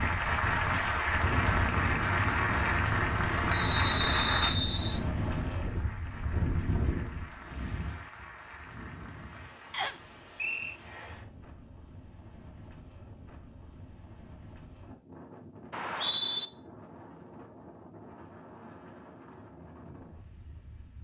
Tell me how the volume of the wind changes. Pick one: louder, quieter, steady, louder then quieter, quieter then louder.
quieter.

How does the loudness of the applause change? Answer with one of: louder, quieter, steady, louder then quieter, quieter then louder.
quieter.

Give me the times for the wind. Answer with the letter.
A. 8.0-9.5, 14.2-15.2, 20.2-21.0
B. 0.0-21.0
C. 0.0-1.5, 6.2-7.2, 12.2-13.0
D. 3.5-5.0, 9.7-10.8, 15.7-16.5
B.